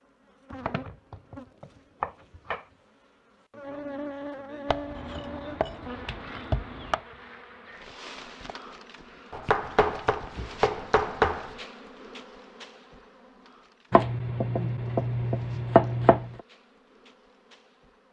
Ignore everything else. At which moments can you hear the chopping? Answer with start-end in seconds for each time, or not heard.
0.5-2.6, 4.7-7.0, 9.3-11.6, 13.9-16.2.